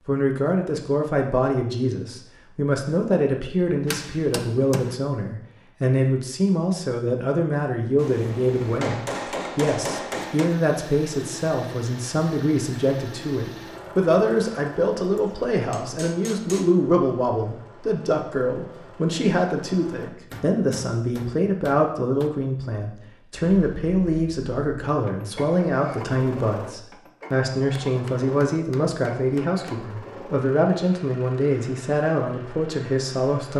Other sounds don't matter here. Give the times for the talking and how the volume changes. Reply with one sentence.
The talking can be heard from 0.1 to 33.5 s, at a steady volume.